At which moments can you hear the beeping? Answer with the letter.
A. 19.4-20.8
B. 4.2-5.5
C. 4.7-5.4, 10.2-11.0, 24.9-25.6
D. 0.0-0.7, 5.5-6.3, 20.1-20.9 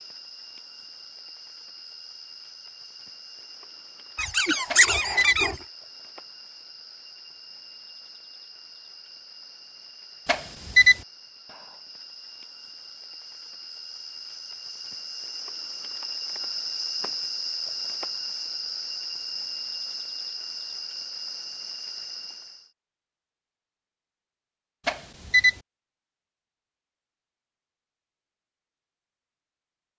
C.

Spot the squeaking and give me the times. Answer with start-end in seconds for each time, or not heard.
4.2-5.5.